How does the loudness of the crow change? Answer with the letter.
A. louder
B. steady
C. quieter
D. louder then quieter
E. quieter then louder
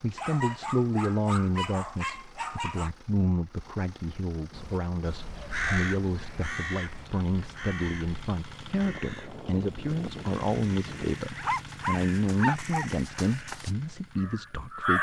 E.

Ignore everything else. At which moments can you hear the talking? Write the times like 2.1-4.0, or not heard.
0.0-14.9.